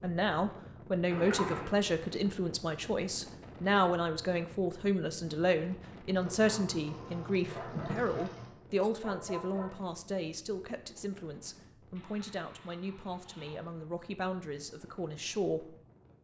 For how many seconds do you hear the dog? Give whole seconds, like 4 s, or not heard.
2 s.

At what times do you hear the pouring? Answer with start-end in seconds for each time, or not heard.
1.1-1.8, 6.2-8.5, 11.9-13.7.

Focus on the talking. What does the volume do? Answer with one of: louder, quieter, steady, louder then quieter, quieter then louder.
quieter.